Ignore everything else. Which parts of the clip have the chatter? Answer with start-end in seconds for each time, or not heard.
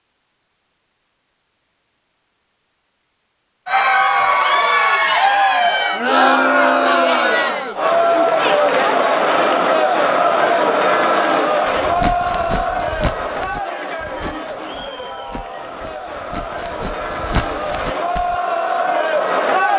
3.6-19.7.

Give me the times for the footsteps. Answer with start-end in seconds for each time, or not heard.
11.7-18.4.